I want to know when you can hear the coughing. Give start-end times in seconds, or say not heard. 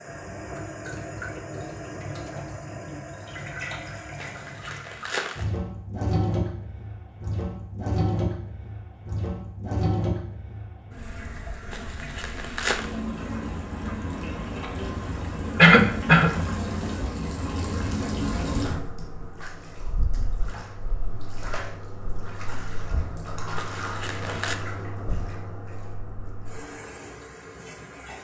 14.6-16.3.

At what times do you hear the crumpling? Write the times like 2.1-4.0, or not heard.
4.2-5.5, 11.7-12.9, 23.6-24.6.